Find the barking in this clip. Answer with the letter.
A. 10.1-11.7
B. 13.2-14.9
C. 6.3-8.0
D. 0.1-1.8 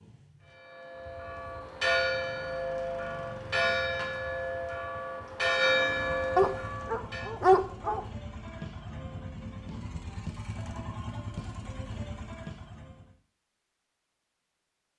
C.